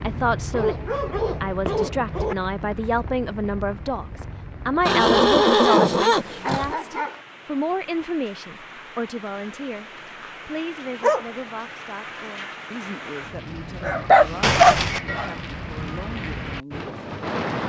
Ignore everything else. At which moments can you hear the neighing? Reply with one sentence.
You can hear the neighing from 4.8 to 6.7 s and from 14.4 to 15.0 s.